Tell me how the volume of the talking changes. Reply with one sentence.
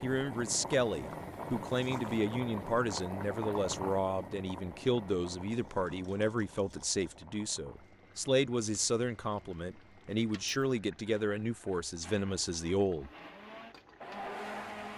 The volume of the talking stays about the same.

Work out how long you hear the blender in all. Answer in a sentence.
The blender can be heard for 3 seconds in total.